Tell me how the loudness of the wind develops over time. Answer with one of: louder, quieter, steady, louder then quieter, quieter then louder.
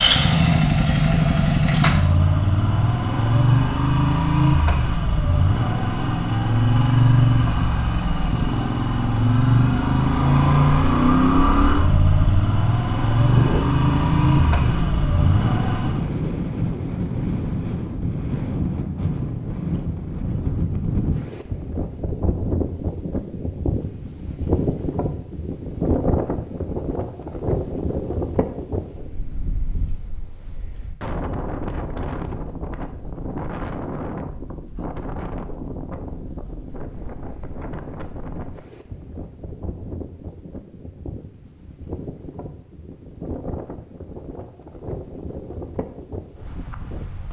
quieter.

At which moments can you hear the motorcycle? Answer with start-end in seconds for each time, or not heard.
0.0-16.1.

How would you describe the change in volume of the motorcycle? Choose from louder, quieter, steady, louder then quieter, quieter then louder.
steady.